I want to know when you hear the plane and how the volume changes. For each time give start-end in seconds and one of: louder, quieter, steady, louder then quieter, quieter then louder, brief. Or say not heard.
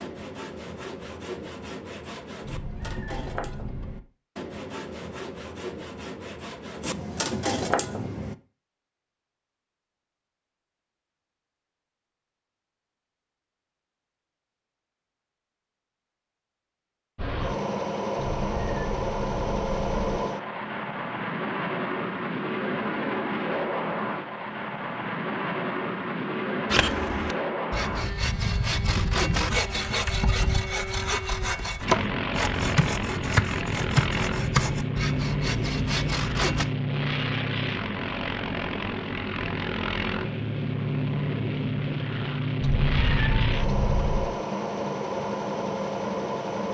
17.1-46.7 steady.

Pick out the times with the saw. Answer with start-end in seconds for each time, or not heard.
0.0-8.3, 26.6-36.6.